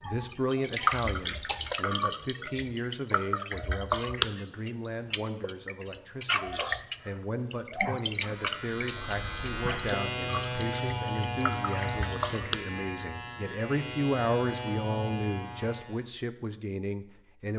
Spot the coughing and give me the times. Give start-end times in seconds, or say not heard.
1.1-1.8.